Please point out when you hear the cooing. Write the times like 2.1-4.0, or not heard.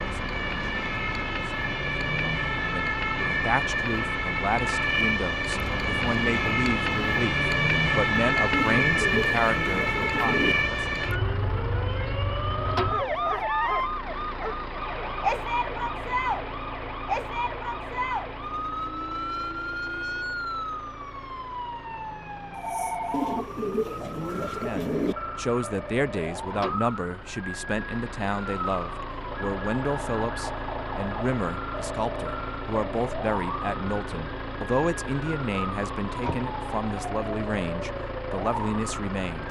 8.5-10.6, 23.1-25.1.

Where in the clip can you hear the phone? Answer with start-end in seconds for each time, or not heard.
22.5-23.4.